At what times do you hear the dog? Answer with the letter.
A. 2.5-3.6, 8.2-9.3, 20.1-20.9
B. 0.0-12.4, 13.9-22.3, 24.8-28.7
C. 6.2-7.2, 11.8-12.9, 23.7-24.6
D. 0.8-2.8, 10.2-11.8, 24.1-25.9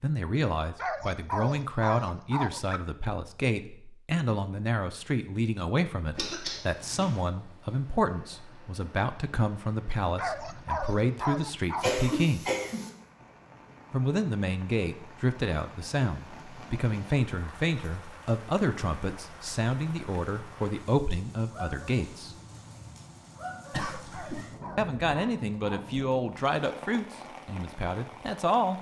D.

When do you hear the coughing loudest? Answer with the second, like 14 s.
12 s.